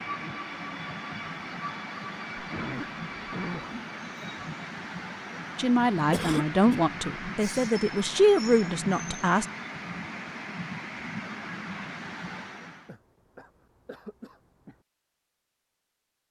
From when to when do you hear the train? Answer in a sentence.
You can hear the train from 0.0 to 12.9 s.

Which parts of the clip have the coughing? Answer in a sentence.
You can hear the coughing from 2.4 to 3.8 s, from 6.1 to 6.8 s and from 12.8 to 14.8 s.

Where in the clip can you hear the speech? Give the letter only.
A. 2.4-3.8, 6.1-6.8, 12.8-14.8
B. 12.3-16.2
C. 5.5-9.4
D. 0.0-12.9
C.